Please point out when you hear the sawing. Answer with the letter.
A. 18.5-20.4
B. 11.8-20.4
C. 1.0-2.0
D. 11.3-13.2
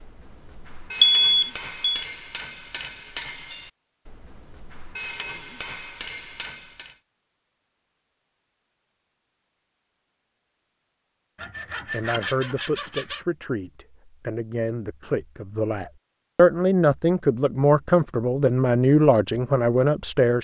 D.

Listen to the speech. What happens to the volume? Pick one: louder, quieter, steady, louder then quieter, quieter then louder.
louder.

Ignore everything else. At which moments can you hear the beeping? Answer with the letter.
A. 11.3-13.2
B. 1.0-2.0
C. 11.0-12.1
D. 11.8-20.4
B.